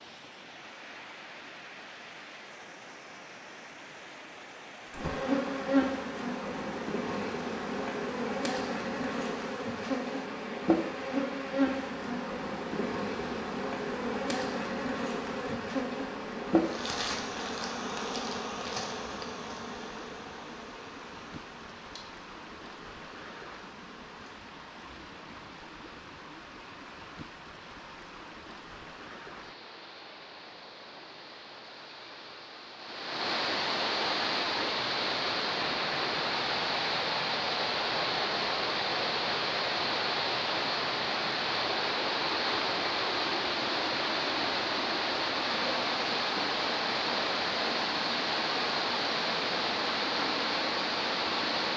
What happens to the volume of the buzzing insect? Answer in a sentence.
The volume of the buzzing insect goes down.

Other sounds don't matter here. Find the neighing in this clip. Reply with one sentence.
The neighing can't be heard in this clip.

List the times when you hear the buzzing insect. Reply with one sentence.
You can hear the buzzing insect from 4.9 to 24.4 s.